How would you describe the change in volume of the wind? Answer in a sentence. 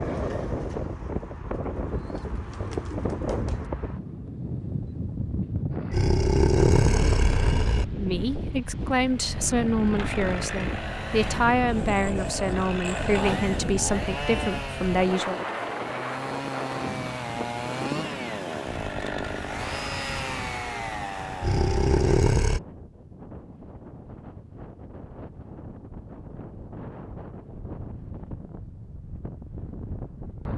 The loudness of the wind goes down.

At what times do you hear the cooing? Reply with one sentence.
The cooing can be heard from 0.0 to 3.7 s.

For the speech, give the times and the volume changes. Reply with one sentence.
You can hear the speech from 8.0 to 15.4 s, at a steady volume.